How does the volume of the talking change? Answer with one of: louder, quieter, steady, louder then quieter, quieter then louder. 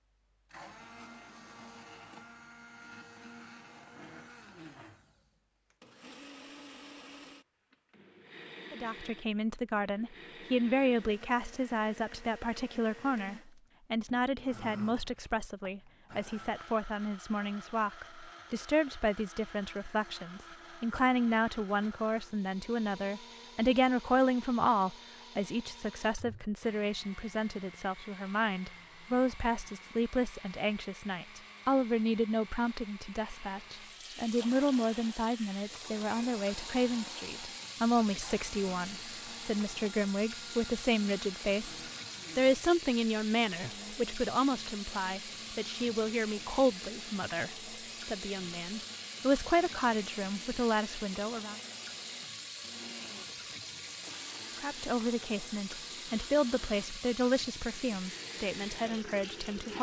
steady.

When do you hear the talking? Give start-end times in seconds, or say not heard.
8.7-51.6, 54.5-59.7.